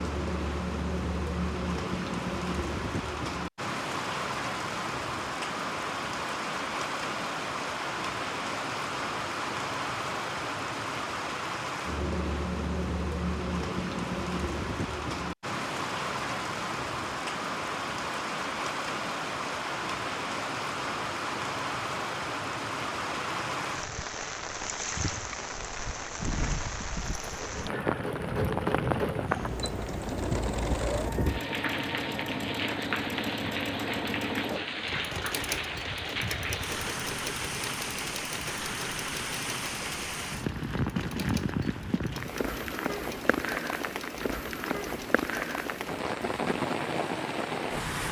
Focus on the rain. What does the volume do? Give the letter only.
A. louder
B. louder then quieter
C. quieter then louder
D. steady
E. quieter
D.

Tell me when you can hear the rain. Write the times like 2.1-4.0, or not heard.
0.0-48.0.